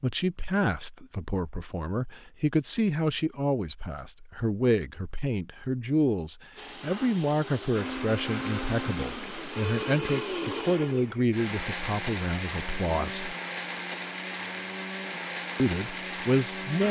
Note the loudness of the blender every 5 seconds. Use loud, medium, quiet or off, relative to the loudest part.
off, loud, loud, loud.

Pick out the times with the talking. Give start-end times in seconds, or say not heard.
0.0-13.3, 15.6-16.8.